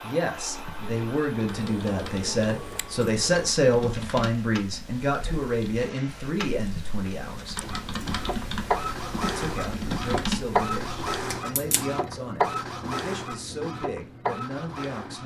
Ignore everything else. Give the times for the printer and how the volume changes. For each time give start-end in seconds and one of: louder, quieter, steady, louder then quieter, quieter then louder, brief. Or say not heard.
0.0-15.2 louder.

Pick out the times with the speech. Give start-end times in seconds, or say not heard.
0.0-7.7, 9.3-15.2.